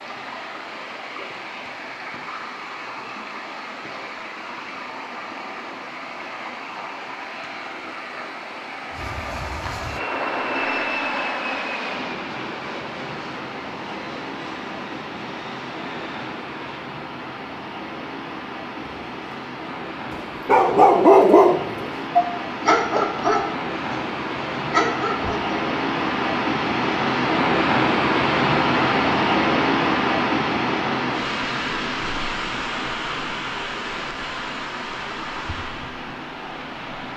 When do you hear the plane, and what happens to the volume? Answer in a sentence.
The plane can be heard from 8.9 to 16.9 s, getting quieter.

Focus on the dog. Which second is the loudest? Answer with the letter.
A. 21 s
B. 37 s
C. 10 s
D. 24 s
A.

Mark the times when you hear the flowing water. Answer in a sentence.
You can hear the flowing water from 0.0 to 37.1 s.